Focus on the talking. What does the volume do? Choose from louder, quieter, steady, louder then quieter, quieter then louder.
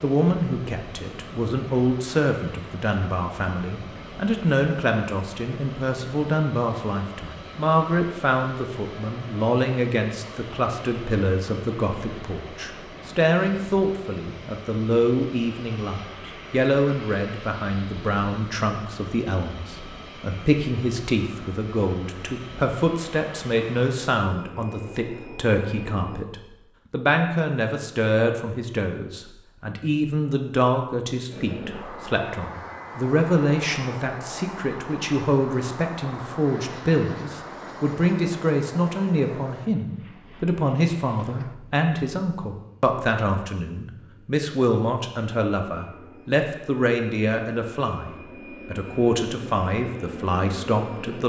steady.